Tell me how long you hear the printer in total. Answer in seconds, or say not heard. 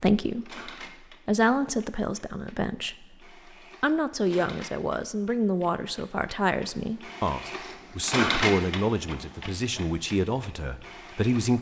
11 s.